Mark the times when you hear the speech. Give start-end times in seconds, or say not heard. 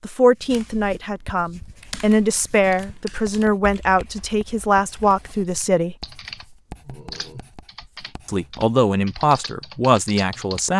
0.0-6.0, 8.2-10.7.